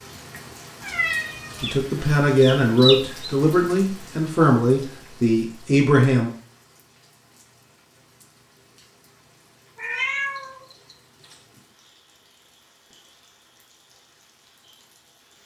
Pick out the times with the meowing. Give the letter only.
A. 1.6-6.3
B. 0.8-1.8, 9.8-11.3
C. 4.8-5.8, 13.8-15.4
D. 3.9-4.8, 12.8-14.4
B.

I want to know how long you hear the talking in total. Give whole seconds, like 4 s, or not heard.
5 s.